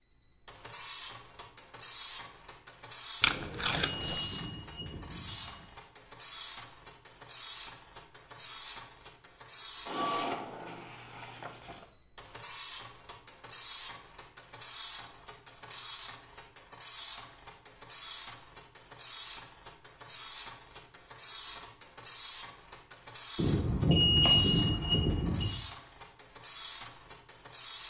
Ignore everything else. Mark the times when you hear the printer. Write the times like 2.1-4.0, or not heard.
0.0-27.8.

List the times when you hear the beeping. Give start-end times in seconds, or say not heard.
3.2-5.7, 23.4-25.5.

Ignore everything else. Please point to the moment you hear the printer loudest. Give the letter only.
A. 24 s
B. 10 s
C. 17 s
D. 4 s
B.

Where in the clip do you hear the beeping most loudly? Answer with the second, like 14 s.
24 s.